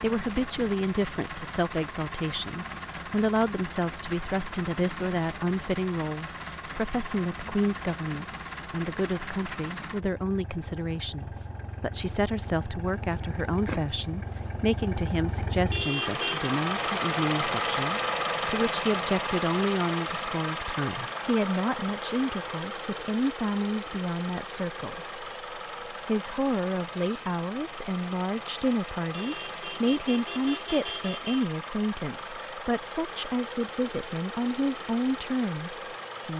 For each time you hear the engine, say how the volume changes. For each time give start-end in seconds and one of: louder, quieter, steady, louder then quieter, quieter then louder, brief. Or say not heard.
0.0-36.3 louder then quieter.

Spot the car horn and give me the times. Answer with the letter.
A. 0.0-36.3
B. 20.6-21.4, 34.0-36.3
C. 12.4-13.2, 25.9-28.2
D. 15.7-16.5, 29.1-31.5
D.